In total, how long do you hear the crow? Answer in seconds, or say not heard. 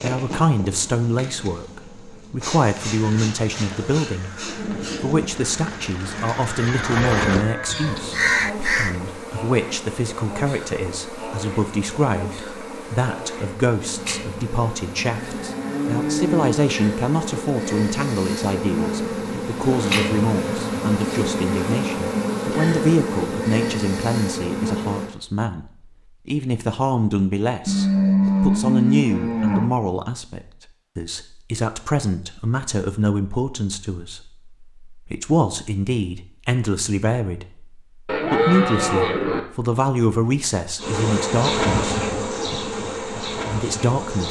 6 s.